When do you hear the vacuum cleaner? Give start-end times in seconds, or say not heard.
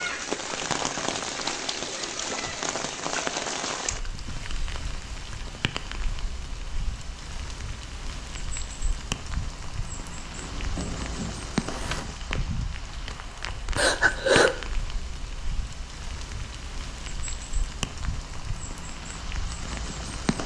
10.3-12.1.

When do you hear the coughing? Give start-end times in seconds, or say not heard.
13.8-14.6.